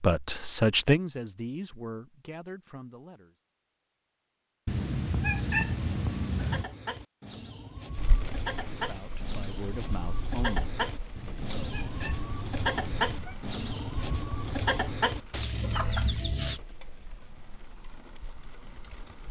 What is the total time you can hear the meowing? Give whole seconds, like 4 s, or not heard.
4 s.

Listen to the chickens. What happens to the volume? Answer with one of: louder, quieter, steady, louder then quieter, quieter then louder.
louder.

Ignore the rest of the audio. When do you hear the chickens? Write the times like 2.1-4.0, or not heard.
5.3-16.6.